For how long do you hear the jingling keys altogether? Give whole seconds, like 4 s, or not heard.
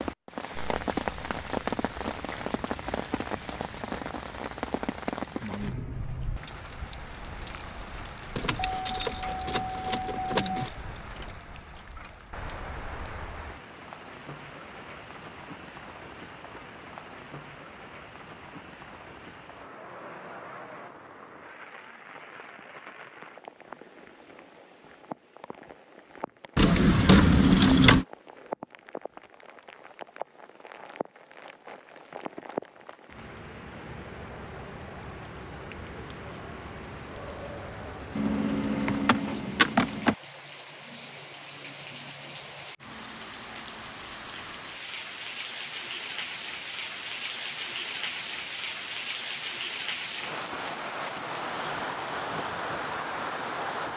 6 s.